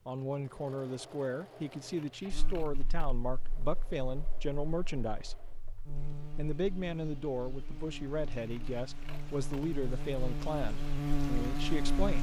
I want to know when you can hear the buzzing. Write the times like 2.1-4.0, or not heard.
2.3-12.1.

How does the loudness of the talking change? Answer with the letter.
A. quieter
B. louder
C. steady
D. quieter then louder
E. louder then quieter
C.